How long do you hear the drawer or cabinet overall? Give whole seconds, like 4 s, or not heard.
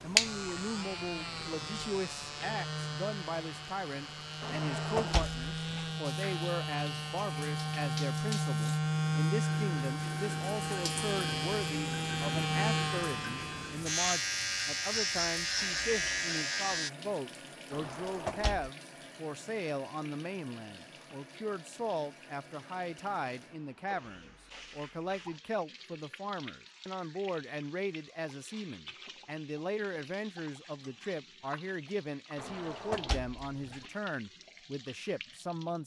4 s.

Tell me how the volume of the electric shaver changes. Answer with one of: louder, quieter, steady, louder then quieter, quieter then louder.
louder.